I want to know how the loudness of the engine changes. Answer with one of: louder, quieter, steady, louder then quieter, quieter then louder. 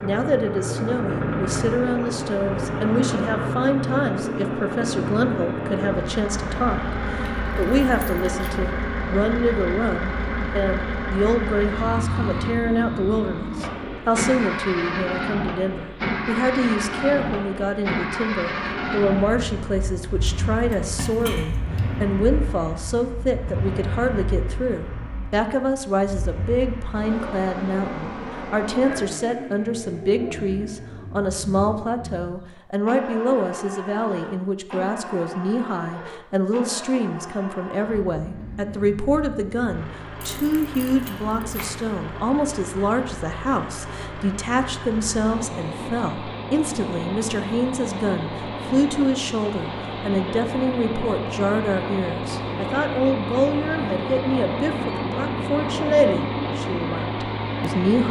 quieter then louder.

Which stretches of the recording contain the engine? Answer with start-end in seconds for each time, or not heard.
0.0-58.0.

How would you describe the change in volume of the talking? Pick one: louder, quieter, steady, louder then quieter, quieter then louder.
steady.